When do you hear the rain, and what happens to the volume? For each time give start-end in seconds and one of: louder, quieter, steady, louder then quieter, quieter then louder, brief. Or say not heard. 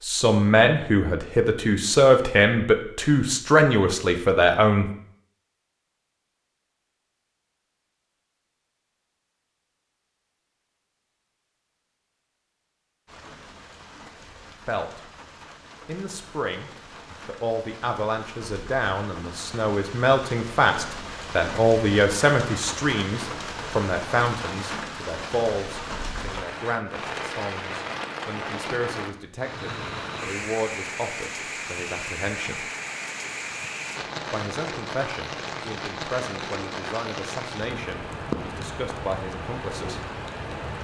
13.1-40.7 louder.